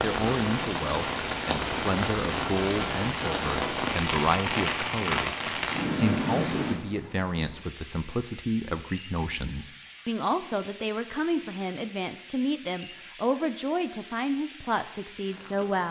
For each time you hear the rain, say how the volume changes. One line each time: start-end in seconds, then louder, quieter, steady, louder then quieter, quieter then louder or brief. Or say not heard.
0.0-15.8 quieter.